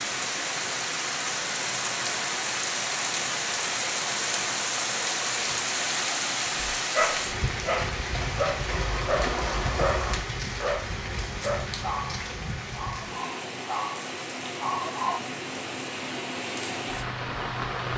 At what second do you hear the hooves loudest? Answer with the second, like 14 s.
9 s.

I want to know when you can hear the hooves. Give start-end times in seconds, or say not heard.
8.1-10.2.